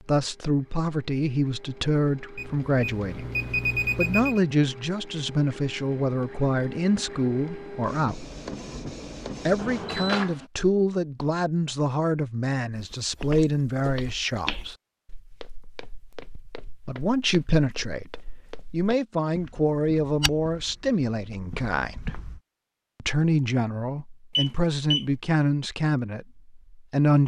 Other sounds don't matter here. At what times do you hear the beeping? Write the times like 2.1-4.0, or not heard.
2.4-4.4, 9.6-10.2, 24.4-25.1.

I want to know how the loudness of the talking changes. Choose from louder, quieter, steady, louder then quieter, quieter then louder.
steady.